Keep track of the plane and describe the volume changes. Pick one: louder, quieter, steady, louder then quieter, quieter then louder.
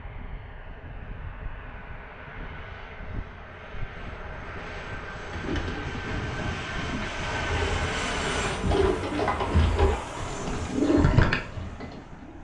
louder then quieter.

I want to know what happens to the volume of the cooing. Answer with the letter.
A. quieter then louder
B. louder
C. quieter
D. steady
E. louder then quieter
B.